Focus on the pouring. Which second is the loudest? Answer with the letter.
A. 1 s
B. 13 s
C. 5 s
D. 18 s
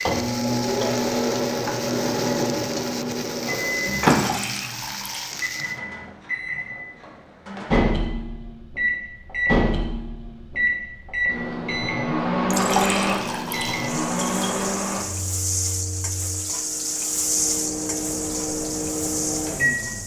B.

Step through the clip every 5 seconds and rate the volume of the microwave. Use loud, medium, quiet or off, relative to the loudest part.
loud, loud, loud, medium.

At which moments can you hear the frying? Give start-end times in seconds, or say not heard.
0.0-5.8, 13.1-20.0.